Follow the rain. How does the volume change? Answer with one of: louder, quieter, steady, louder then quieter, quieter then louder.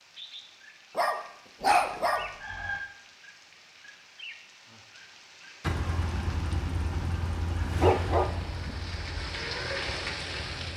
louder.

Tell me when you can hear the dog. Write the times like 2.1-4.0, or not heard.
0.9-2.3, 7.8-8.8.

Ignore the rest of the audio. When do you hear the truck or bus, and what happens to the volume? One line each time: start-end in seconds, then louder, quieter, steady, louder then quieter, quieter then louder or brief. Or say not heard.
5.6-10.7 quieter.